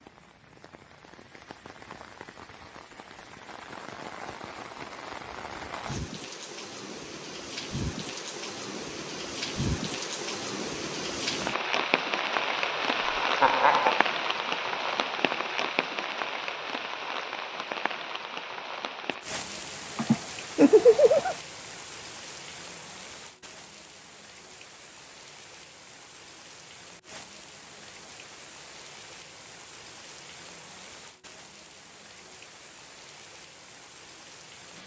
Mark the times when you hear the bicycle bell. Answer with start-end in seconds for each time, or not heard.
not heard.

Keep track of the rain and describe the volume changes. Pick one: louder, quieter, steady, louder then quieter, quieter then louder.
louder then quieter.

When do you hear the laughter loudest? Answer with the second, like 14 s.
21 s.